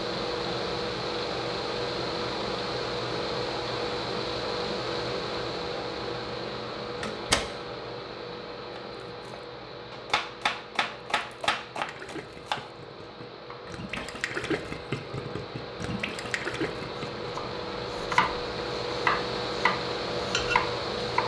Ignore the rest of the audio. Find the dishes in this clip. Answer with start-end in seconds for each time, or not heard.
not heard.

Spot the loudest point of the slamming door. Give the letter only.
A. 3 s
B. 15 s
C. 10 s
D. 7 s
D.